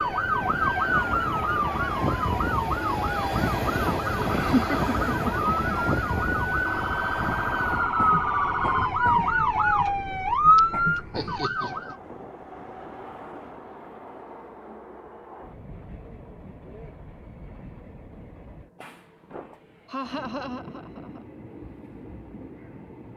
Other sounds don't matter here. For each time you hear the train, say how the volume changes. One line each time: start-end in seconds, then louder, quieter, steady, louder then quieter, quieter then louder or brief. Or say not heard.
0.0-23.1 quieter.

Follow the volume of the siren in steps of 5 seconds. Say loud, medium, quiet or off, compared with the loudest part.
medium, loud, loud, off, off.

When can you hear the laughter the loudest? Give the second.
5 s.